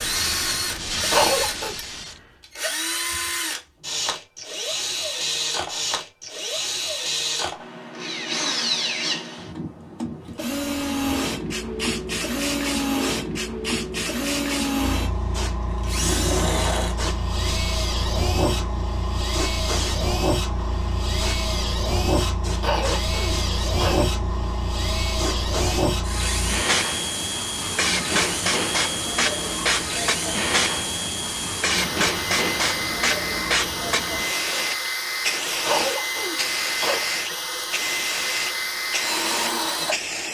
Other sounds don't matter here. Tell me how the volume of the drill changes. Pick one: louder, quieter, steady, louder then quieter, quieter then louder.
steady.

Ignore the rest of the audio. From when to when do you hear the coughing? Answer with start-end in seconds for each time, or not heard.
1.1-1.8, 22.6-24.1, 35.6-37.0.